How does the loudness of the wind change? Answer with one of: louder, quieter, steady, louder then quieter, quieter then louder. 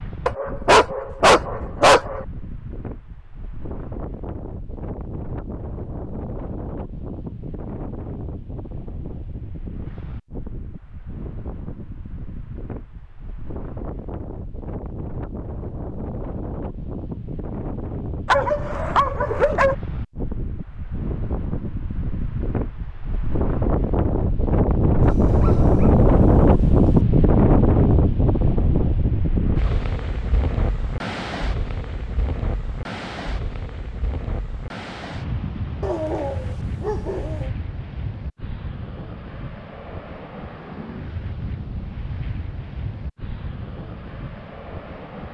louder then quieter.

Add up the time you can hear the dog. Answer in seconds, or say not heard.
7 s.